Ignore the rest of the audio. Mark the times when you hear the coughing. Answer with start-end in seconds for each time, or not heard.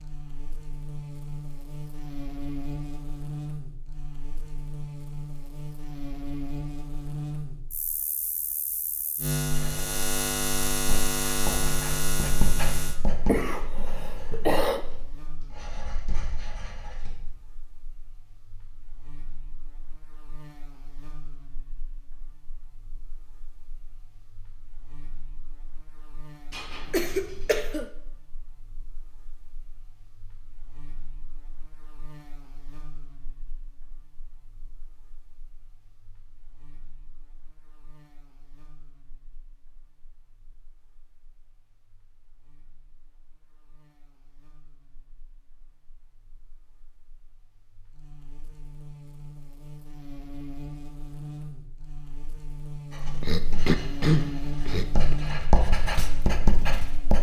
12.9-14.8, 26.5-27.9, 53.2-55.1.